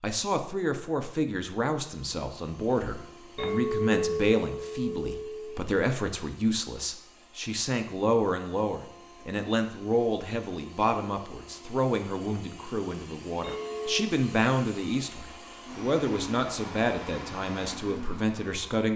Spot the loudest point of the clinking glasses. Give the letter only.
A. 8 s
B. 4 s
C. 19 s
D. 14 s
B.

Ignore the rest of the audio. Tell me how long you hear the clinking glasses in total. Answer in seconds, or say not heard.
3 s.